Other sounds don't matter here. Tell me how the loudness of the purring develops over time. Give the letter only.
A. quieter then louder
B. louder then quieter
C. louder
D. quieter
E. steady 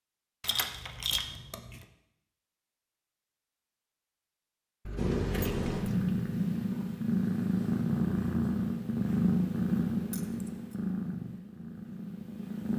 D.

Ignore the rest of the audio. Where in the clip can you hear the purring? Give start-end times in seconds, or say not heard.
5.0-12.7.